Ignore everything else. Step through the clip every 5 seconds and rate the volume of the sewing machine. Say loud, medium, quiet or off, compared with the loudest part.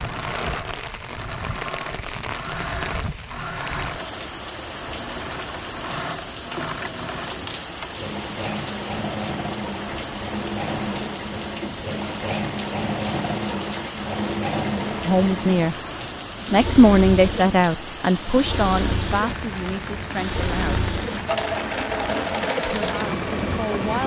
medium, medium, loud, loud, loud.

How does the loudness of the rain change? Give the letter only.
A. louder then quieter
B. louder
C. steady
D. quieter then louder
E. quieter
C.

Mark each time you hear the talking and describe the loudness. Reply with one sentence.
You can hear the talking briefly from 15.1 to 15.8 s; from 16.5 to 20.9 s, getting quieter; and briefly from 22.8 to 24.0 s.